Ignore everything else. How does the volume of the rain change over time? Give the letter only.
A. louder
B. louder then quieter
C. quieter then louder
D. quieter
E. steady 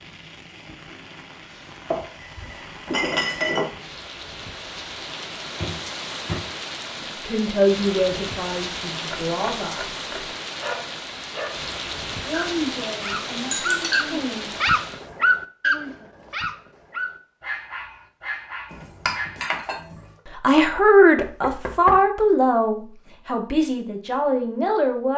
A.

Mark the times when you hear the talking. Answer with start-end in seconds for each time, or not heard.
7.0-9.8, 12.2-14.5, 20.4-25.1.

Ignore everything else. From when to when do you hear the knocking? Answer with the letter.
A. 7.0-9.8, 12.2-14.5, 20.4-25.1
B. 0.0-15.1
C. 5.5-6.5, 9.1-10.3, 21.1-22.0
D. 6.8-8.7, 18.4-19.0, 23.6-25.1
C.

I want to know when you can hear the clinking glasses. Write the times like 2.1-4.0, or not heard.
1.9-3.7, 13.4-14.1, 18.7-20.1.